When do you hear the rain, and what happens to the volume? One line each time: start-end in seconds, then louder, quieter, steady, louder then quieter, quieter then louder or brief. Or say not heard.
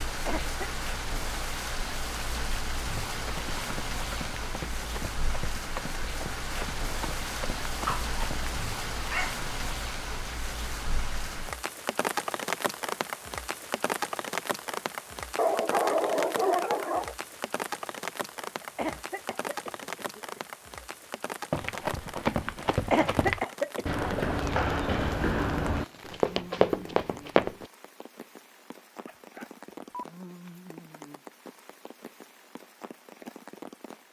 0.0-34.0 quieter.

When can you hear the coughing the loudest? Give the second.
23 s.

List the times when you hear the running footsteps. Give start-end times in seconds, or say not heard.
3.0-8.6, 21.5-27.6.